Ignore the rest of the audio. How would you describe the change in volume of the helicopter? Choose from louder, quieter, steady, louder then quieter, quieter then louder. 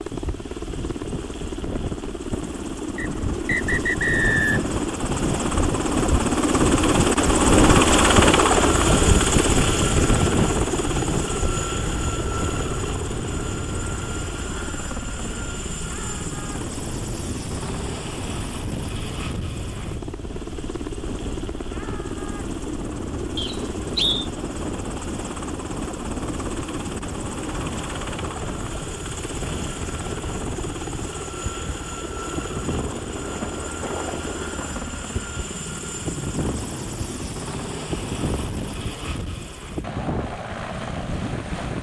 quieter.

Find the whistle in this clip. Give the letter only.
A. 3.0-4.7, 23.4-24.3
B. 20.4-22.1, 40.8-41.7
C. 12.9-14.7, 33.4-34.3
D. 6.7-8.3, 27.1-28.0
A.